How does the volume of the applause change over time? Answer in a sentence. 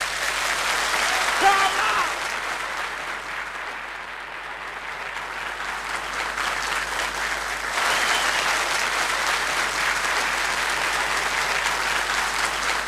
The loudness of the applause goes down, then up.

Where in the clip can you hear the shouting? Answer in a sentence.
You can hear the shouting from 1.4 to 2.1 s.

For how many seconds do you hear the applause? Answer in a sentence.
The applause can be heard for 13 seconds in total.